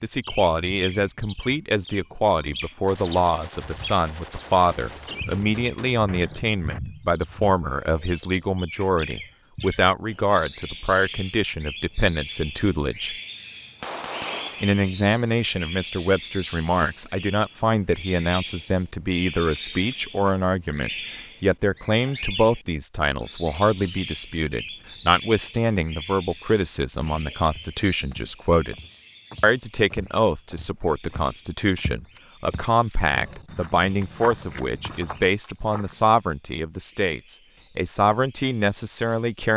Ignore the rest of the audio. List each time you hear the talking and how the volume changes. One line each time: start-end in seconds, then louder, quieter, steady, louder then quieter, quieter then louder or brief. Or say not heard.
0.0-13.2 steady
14.6-28.8 steady
29.4-39.5 steady.